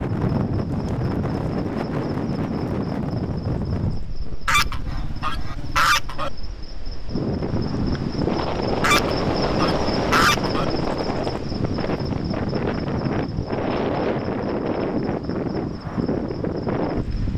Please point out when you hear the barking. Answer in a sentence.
The barking can't be heard in this clip.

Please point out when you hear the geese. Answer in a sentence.
The geese can be heard from 4.5 to 6.3 s and from 8.8 to 10.7 s.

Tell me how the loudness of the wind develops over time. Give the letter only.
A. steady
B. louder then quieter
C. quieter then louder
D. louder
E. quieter
C.